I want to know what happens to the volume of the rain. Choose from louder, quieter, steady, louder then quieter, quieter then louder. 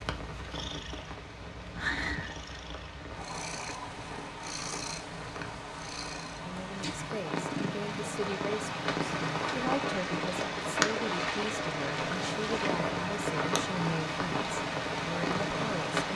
louder.